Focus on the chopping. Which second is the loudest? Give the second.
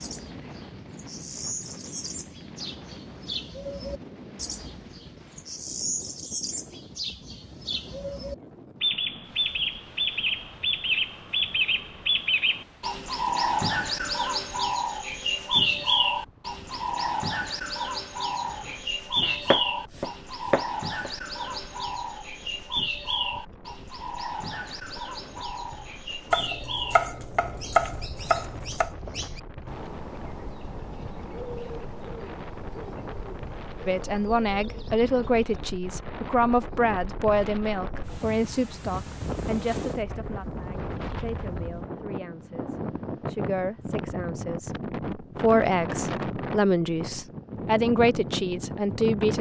28 s.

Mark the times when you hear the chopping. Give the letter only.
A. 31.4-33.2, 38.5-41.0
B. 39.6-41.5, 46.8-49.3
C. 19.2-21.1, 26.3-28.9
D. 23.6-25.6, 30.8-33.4
C.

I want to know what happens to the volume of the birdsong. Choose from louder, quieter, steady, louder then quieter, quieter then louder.
louder then quieter.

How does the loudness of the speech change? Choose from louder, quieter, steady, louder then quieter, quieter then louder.
quieter then louder.